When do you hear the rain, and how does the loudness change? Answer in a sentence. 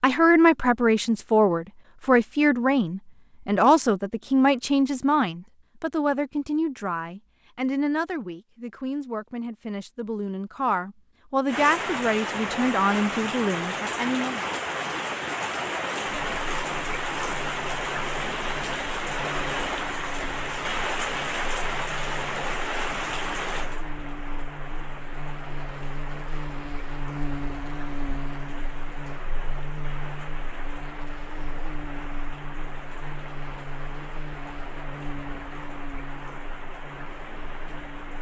You can hear the rain from 11.4 to 38.1 s, getting quieter.